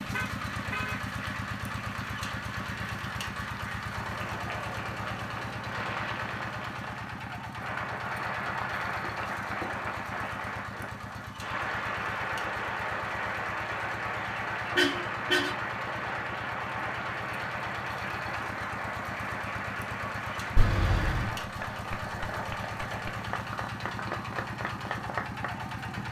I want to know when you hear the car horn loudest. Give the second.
15 s.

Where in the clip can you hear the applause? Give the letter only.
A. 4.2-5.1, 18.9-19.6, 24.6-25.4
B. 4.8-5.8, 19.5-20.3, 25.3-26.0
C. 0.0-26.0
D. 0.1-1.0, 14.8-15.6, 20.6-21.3
C.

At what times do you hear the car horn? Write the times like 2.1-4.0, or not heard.
0.1-1.0, 14.8-15.6, 20.6-21.3.